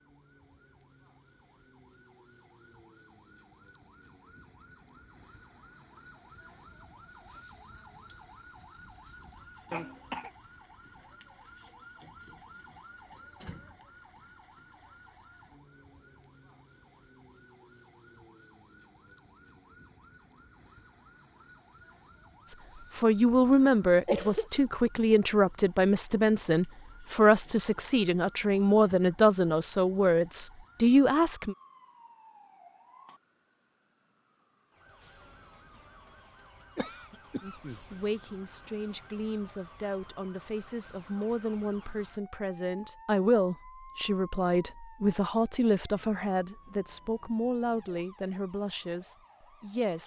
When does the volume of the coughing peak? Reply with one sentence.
The volume of the coughing peaks at 24 seconds.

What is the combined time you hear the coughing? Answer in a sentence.
You can hear the coughing for 3 seconds altogether.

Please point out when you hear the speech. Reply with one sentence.
You can hear the speech from 22.4 to 31.6 s and from 37.4 to 50.0 s.